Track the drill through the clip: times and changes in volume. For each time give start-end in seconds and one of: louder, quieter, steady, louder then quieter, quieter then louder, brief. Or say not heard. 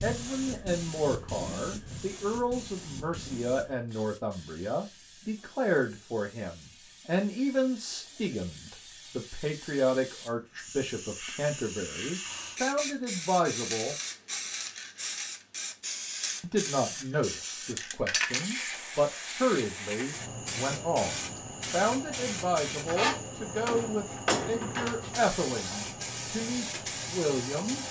not heard.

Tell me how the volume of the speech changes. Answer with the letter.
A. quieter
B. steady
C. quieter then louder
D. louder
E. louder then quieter
B.